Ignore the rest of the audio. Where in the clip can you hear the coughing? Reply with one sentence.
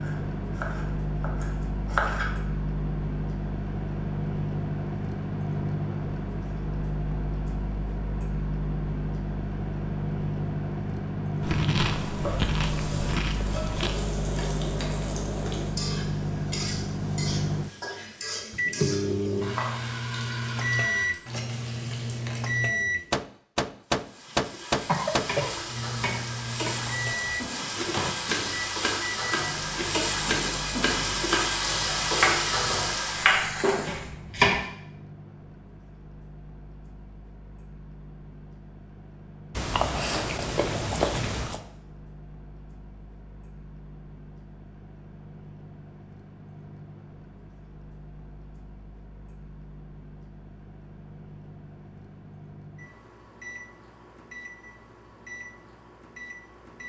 The coughing can be heard from 24.9 to 25.5 s.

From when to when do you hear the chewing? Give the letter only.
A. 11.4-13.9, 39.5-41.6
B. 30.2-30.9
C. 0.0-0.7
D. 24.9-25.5
A.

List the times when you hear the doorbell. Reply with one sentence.
The doorbell can't be heard in this clip.